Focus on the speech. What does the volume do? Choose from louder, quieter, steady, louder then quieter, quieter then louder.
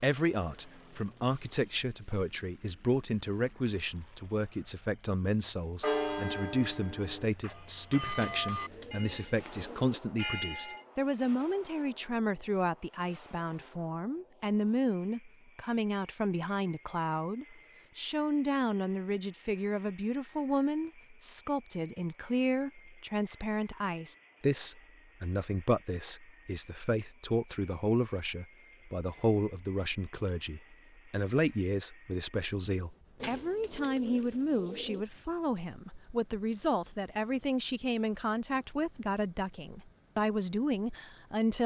steady.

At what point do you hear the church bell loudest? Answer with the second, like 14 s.
6 s.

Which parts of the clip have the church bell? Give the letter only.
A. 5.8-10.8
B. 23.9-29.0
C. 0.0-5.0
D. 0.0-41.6
A.